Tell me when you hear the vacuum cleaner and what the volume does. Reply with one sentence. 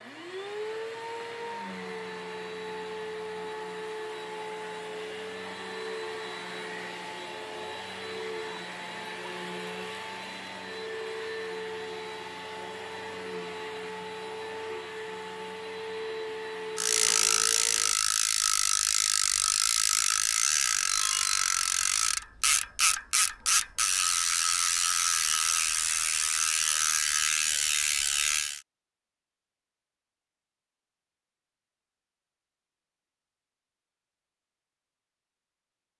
The vacuum cleaner can be heard from 0.0 to 17.9 s, at a steady volume.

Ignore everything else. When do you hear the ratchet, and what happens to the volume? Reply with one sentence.
The ratchet can be heard from 16.8 to 28.6 s, at a steady volume.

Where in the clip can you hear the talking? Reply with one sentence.
You can't hear the talking here.